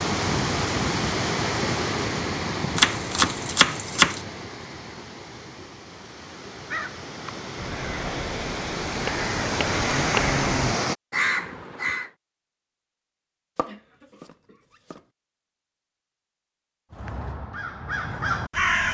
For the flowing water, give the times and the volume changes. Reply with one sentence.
The flowing water can be heard from 0.0 to 10.9 s, getting quieter then louder.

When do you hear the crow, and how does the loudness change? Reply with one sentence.
You can hear the crow from 6.5 to 12.1 s, getting louder; and briefly from 16.9 to 18.8 s.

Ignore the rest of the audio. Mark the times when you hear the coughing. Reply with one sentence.
The coughing can be heard from 13.7 to 14.8 s.